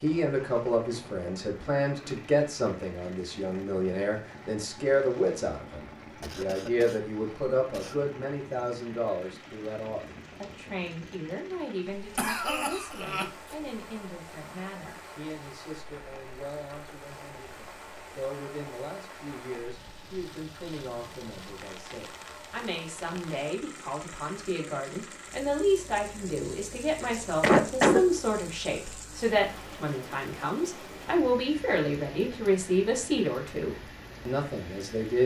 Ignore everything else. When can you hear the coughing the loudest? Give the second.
28 s.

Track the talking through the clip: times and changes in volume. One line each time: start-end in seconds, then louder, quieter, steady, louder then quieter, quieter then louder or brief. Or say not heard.
0.0-35.2 quieter then louder.